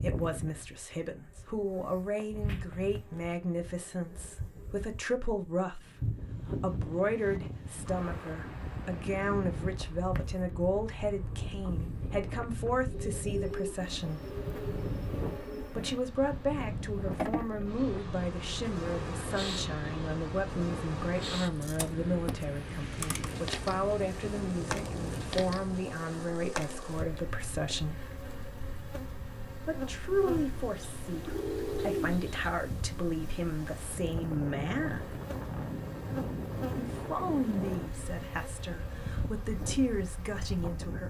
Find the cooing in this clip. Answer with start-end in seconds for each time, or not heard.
12.9-15.8, 30.8-32.4.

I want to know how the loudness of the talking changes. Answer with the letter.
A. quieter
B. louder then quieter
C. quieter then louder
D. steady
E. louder
D.